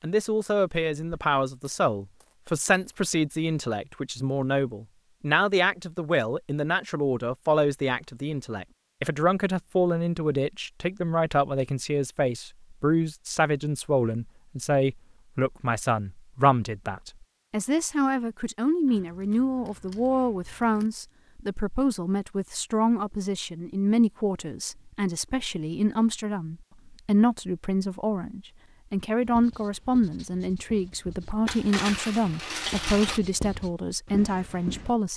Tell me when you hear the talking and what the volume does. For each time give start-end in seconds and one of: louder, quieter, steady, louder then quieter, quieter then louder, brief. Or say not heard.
0.0-35.1 steady.